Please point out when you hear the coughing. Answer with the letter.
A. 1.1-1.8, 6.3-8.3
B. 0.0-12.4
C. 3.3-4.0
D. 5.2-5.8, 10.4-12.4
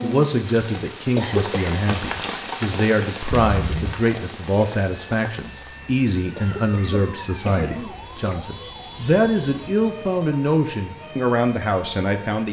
A.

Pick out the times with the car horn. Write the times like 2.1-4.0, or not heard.
3.3-4.0.